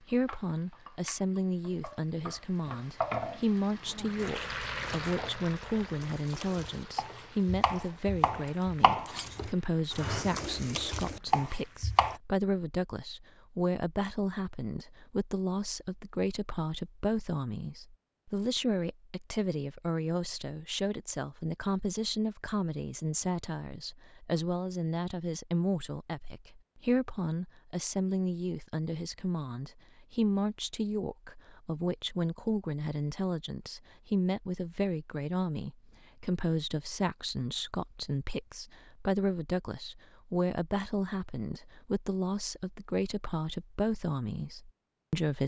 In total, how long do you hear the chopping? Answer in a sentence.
The chopping can be heard for 8 seconds in total.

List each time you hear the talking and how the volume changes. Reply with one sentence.
You can hear the talking from 0.0 to 45.4 s, at a steady volume.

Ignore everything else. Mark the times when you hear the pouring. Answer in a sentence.
The pouring can't be heard in this clip.